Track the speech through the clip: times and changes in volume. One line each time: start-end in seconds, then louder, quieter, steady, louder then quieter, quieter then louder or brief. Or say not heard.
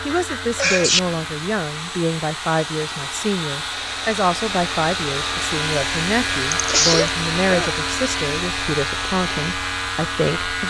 0.1-10.6 steady.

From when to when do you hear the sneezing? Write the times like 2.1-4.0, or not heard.
0.6-1.0, 6.5-7.7.